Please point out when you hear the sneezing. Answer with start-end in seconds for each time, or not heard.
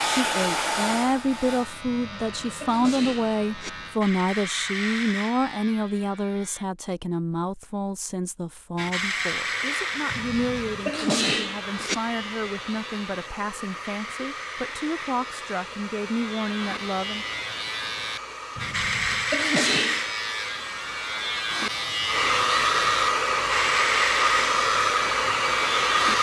1.9-3.7, 10.1-11.9, 18.6-20.1.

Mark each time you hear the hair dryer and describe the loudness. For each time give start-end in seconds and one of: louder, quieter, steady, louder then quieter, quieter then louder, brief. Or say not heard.
0.0-1.7 brief
9.3-26.1 louder.